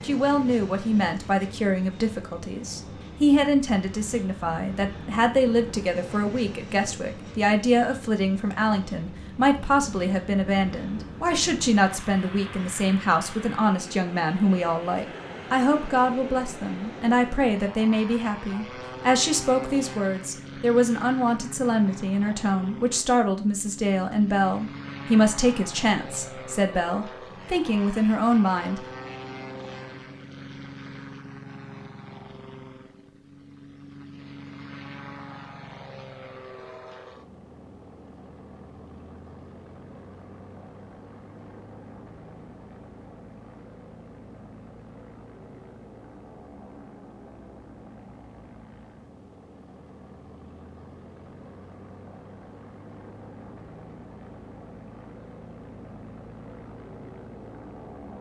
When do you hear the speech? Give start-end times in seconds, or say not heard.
0.0-28.9.